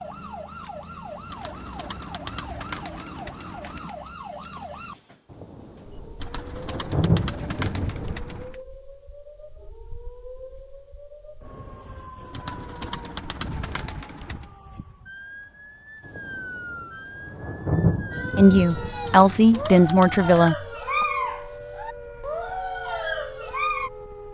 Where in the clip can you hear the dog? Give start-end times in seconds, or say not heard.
18.1-23.9.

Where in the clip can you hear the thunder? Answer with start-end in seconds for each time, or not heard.
5.3-8.4, 16.1-19.4.